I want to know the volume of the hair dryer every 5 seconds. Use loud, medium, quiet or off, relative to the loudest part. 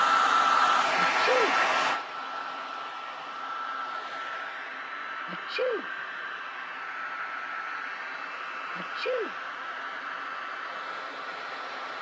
loud, medium, medium.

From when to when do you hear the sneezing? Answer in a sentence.
You can hear the sneezing from 0.9 to 1.6 s, from 5.2 to 5.8 s and from 8.8 to 9.3 s.